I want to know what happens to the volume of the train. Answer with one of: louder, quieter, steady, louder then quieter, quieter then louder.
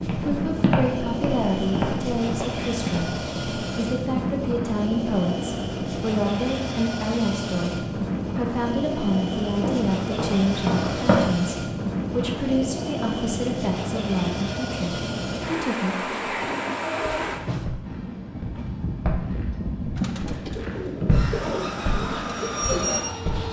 steady.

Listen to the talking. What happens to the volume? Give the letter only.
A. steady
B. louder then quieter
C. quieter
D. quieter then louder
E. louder
A.